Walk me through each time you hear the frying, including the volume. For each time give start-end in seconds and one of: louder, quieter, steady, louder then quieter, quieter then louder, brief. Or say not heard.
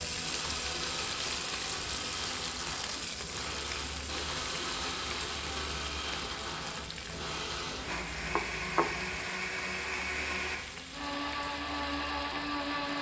0.0-12.9 quieter.